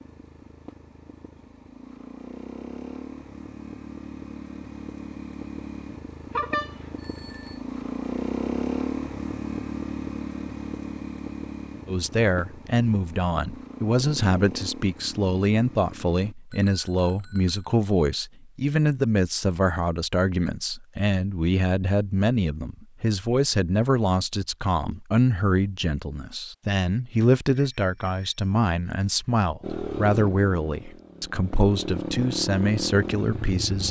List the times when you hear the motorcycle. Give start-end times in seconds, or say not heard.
0.0-16.4, 29.6-33.8.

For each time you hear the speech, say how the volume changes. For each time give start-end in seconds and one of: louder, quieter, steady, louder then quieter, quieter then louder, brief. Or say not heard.
11.8-33.8 steady.